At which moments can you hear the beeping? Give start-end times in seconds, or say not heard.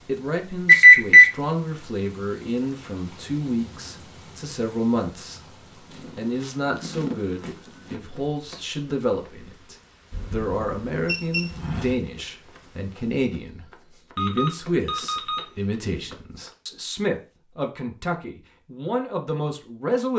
0.7-1.2, 10.1-11.4, 14.2-16.1.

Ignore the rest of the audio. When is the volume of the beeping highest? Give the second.
1 s.